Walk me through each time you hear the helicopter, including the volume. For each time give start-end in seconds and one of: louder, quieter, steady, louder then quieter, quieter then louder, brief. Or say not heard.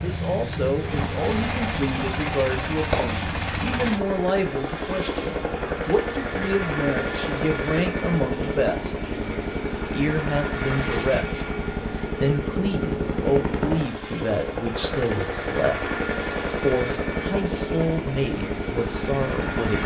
0.0-19.8 steady.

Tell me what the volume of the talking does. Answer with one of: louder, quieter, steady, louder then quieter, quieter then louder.
steady.